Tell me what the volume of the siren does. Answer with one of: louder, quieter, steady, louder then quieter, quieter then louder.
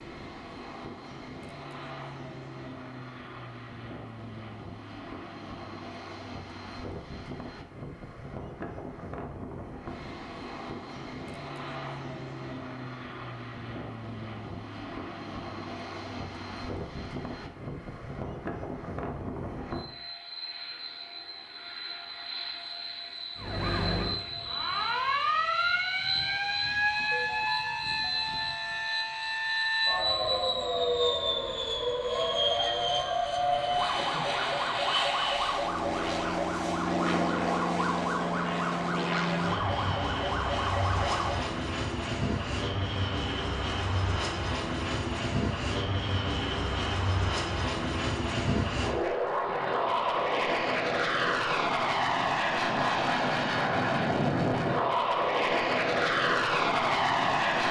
steady.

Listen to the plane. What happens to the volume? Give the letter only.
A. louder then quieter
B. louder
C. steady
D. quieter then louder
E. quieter
B.